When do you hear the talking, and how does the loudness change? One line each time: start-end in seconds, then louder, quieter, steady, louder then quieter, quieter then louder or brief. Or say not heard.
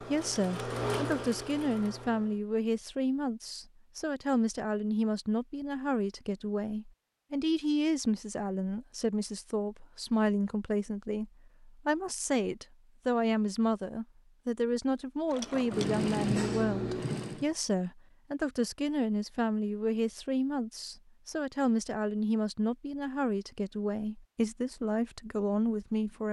0.0-26.2 steady.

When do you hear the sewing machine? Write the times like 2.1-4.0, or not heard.
0.0-2.4, 15.3-17.5.